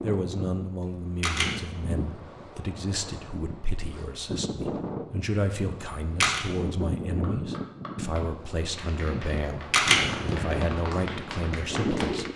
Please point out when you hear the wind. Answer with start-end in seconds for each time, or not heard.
0.0-12.3.